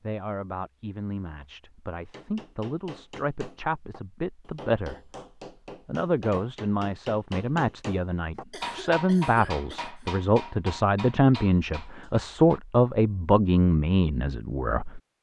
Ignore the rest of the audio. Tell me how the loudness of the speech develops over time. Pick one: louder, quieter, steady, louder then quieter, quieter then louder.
louder.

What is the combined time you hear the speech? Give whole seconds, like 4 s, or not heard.
14 s.